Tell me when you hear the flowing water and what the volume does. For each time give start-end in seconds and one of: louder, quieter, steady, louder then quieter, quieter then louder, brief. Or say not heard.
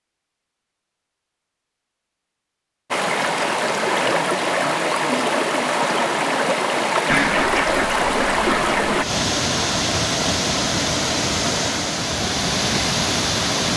2.9-13.7 steady.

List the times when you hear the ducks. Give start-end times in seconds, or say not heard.
7.0-9.1.